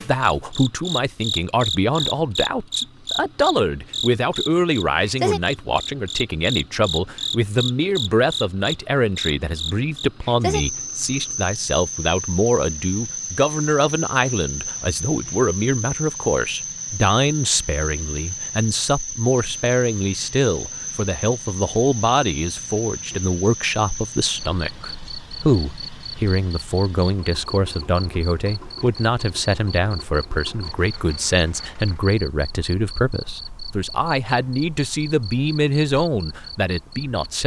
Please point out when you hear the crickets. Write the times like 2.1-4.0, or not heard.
0.0-37.4.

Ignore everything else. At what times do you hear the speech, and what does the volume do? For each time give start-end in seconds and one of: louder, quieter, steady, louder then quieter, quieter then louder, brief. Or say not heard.
0.0-37.4 steady.